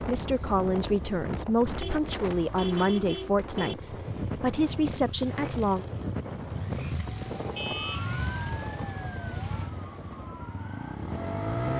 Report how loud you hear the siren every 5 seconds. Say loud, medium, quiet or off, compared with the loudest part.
off, loud, loud.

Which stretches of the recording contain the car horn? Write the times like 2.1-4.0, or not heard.
1.8-3.8, 7.5-8.2.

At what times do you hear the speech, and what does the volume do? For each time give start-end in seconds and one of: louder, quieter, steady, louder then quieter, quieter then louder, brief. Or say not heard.
0.1-5.8 quieter then louder.